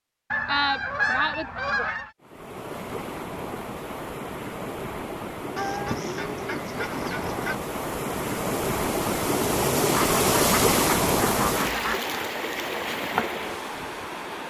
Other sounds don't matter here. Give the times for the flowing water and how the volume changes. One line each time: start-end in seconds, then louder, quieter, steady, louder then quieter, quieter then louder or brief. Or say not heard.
2.2-14.4 louder then quieter.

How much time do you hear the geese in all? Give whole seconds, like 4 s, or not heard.
6 s.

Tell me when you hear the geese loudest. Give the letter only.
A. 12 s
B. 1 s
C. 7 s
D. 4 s
B.